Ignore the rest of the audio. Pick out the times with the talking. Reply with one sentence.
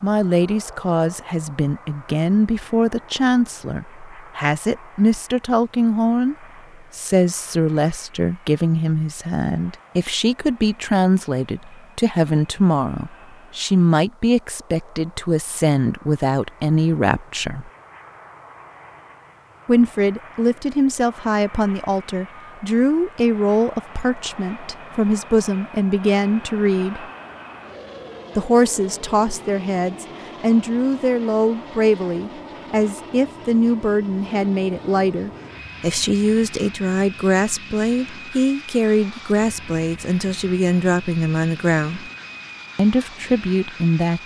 The talking can be heard from 0.0 to 6.3 s, from 7.0 to 17.7 s, from 19.6 to 27.1 s, from 28.4 to 42.1 s and from 42.8 to 44.2 s.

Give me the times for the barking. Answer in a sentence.
You can't hear the barking here.